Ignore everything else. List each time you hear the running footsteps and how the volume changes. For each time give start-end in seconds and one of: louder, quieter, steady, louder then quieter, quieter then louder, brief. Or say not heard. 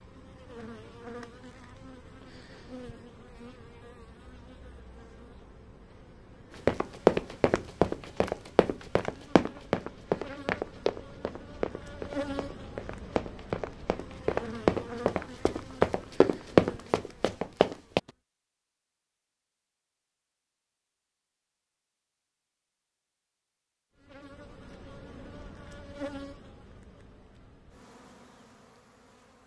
6.7-18.0 quieter then louder.